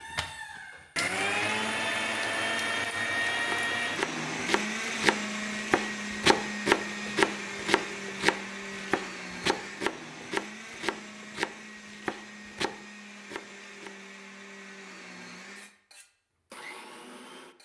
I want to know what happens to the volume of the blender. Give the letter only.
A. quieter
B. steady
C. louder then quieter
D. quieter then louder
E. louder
A.